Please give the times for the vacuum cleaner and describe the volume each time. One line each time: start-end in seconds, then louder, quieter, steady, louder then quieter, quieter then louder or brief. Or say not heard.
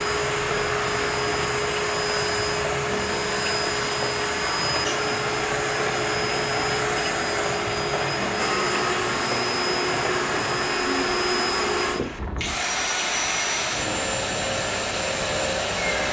0.0-16.0 steady.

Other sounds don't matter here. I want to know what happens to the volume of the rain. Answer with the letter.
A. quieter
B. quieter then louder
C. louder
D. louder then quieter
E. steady
E.